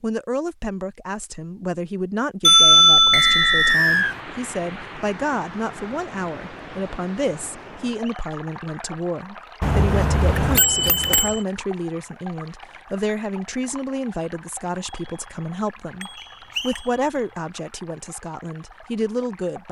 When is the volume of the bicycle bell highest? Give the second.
3 s.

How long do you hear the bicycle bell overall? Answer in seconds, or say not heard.
5 s.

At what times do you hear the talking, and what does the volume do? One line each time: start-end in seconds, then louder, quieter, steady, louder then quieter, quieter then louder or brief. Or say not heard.
0.0-19.6 steady.